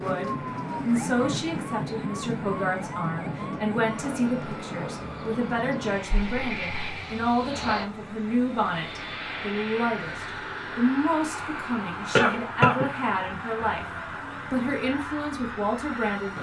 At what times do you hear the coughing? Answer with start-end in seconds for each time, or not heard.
12.2-12.8.